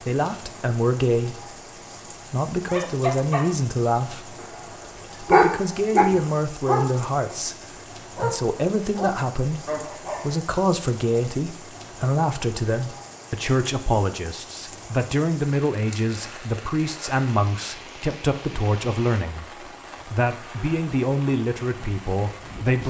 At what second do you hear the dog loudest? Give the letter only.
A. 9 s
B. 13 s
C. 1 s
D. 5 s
D.